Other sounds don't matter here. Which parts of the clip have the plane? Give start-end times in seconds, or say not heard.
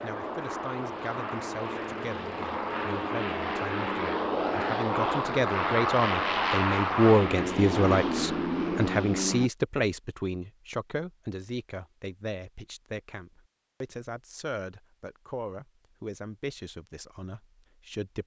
0.0-9.5.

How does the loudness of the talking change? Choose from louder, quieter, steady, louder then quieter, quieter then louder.
louder then quieter.